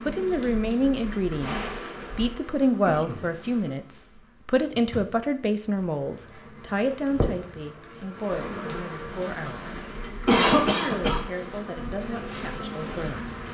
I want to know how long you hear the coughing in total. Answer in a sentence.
The coughing can be heard for 2 seconds in total.